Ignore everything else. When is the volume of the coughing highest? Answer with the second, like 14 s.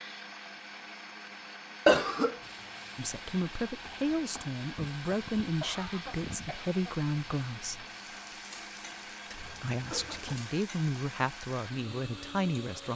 2 s.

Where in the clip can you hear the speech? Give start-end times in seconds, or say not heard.
3.0-7.8, 9.3-12.9.